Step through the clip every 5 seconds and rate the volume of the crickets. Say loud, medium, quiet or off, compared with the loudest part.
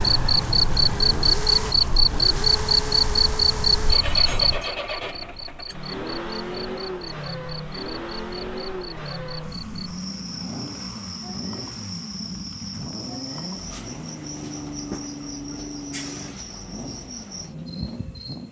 loud, quiet, quiet, quiet.